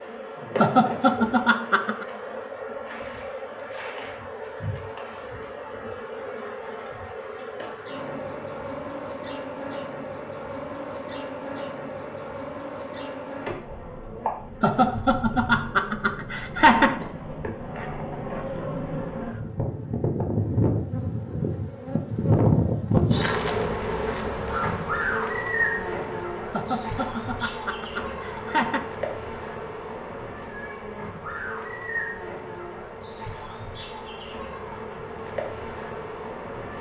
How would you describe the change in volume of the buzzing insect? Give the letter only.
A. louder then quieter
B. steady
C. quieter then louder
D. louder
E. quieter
A.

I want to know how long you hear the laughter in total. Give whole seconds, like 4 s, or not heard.
6 s.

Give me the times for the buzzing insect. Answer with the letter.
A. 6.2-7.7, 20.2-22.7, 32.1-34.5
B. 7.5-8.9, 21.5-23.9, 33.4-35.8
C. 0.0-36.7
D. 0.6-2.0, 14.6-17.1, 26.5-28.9
C.